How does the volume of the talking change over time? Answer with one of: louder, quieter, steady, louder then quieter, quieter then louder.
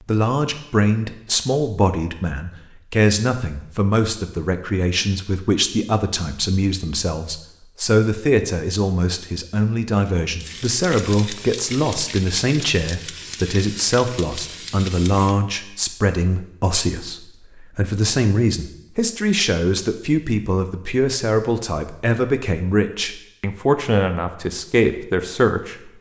steady.